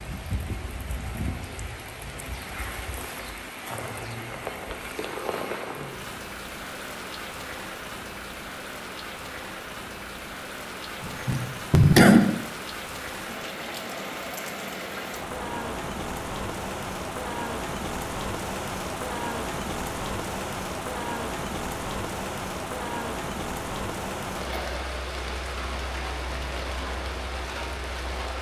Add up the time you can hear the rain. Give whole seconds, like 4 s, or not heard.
28 s.